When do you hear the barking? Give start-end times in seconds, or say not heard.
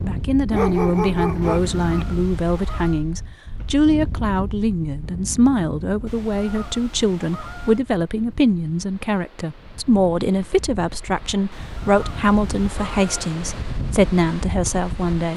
0.5-1.9.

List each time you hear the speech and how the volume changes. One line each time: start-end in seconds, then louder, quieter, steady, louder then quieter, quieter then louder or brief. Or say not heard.
0.0-15.3 steady.